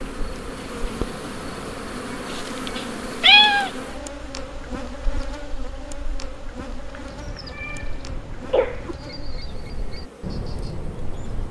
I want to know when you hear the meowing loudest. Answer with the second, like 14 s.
3 s.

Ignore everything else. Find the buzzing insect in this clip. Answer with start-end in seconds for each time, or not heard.
0.0-11.4.